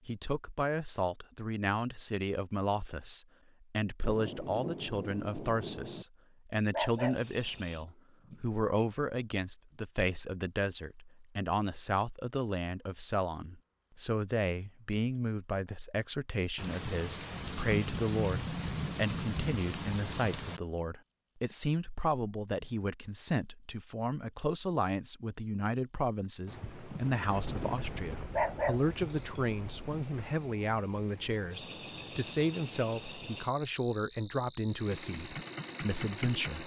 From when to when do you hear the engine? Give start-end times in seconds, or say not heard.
34.7-36.6.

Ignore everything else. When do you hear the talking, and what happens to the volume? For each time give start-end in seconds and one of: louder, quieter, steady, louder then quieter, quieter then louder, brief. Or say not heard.
0.1-36.6 steady.